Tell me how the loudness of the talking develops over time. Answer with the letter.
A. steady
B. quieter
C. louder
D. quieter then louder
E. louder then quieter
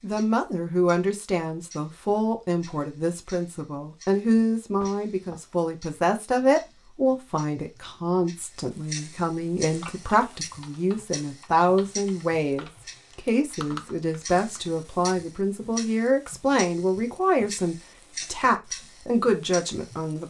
A.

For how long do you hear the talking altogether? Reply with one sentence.
You can hear the talking for 20 seconds altogether.